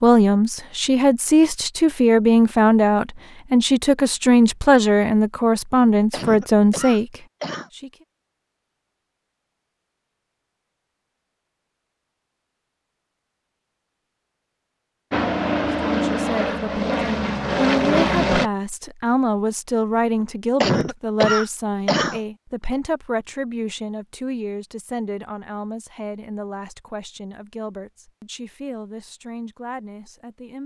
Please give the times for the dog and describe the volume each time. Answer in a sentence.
The dog can't be heard in this clip.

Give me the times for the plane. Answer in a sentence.
You can hear the plane from 15.1 to 18.5 s.